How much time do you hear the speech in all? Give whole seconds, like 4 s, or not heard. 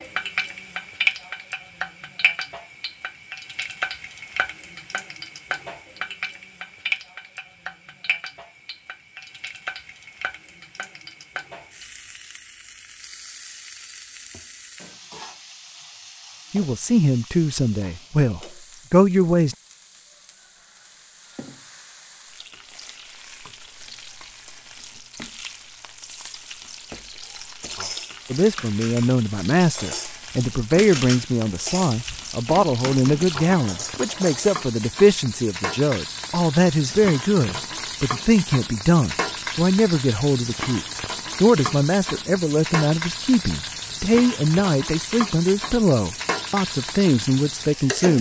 23 s.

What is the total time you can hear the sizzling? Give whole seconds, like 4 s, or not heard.
48 s.